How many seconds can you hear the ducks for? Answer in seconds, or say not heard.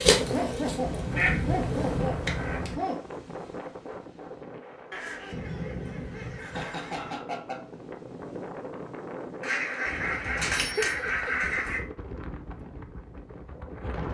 7 s.